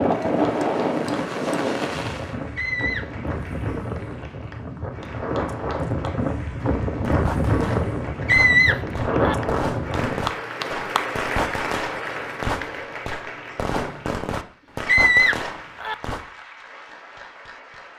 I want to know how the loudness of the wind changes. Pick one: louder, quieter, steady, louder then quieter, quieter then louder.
quieter then louder.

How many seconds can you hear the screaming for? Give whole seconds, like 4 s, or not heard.
3 s.